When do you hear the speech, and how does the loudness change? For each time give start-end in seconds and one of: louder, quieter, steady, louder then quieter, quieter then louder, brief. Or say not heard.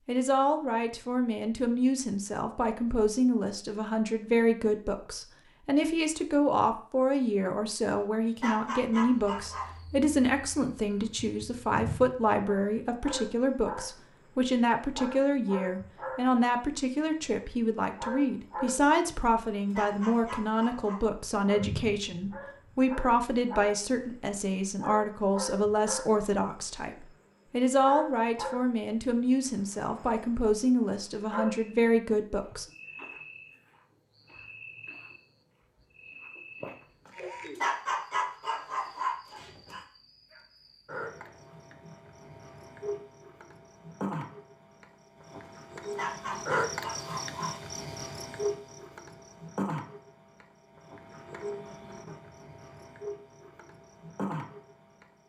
0.1-32.6 steady.